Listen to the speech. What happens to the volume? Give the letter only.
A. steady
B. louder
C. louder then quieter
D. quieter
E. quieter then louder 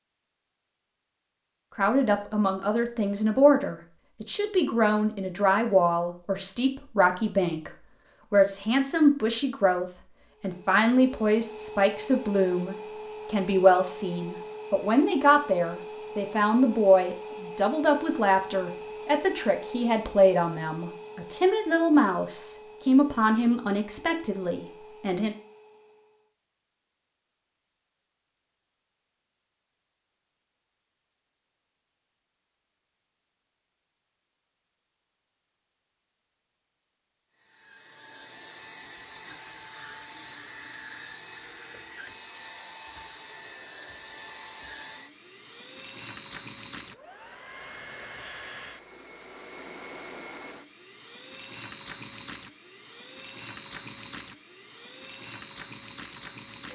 A.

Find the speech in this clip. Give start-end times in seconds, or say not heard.
1.8-25.4.